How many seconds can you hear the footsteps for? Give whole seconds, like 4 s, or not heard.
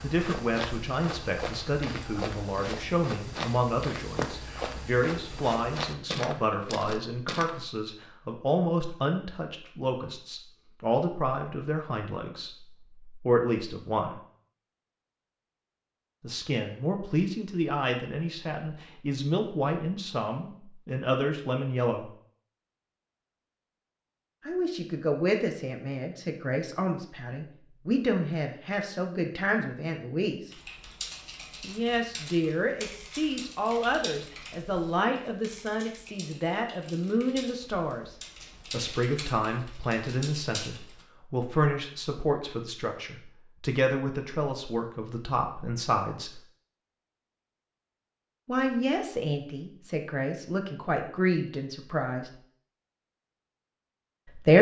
8 s.